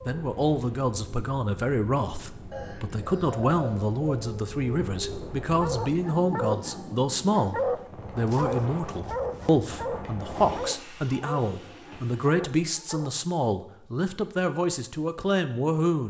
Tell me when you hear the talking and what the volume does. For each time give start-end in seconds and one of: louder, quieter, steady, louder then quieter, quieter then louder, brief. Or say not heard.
0.1-16.0 steady.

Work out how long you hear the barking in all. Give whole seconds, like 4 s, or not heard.
8 s.